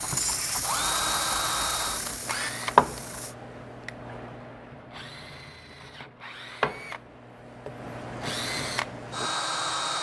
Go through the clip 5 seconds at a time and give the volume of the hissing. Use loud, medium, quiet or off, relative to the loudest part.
loud, off.